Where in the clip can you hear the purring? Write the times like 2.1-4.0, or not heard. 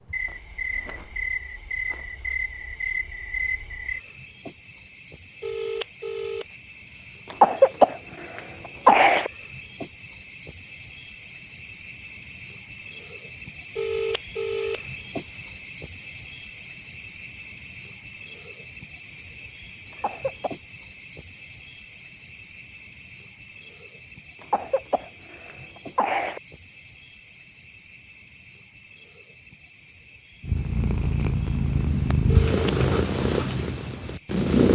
30.4-34.7.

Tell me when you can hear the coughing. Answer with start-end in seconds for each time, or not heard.
7.3-9.3, 19.9-20.5, 24.4-26.4.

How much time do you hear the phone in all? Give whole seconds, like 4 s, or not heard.
4 s.